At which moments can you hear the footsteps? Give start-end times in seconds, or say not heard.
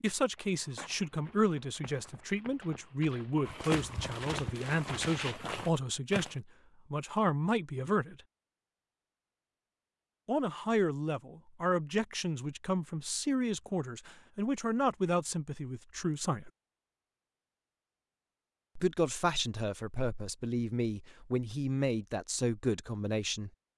0.3-6.3.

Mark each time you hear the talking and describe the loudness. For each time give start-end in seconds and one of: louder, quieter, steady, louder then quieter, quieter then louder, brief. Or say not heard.
0.0-8.2 steady
10.2-16.5 steady
18.8-23.5 steady.